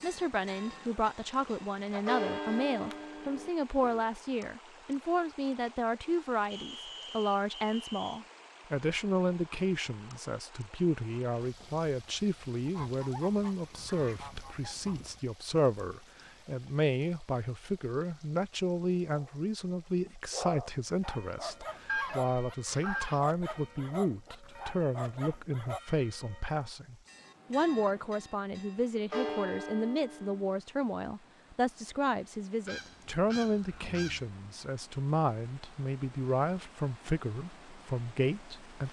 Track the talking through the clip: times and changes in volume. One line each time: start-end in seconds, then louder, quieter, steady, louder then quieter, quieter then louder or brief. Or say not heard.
0.0-38.8 steady.